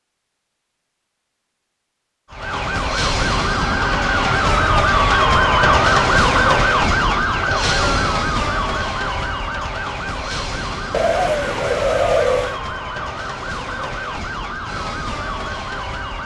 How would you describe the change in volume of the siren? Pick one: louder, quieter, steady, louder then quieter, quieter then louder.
quieter.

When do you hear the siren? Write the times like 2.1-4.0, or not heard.
2.3-16.2.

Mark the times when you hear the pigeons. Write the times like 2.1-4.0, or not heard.
10.9-12.6.